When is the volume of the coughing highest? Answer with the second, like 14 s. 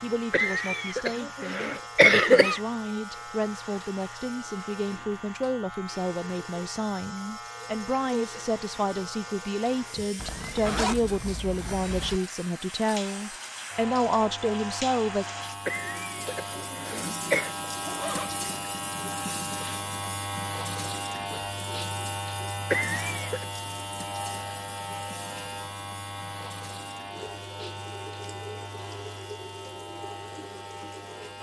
2 s.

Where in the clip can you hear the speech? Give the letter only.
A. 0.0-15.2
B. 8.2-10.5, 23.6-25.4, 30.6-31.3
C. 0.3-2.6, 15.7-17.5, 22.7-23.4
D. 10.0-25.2
A.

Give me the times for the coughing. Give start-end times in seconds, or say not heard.
0.3-2.6, 15.7-17.5, 22.7-23.4.